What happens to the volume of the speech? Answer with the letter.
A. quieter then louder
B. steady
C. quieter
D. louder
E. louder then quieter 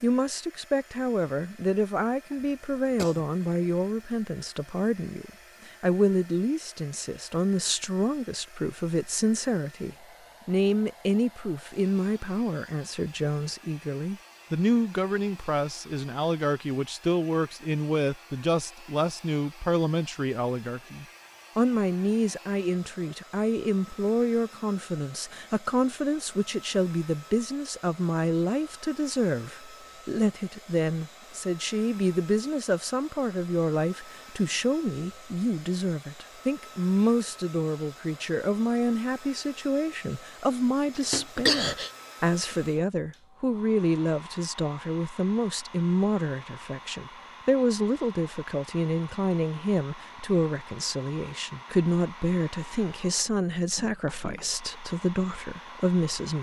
B.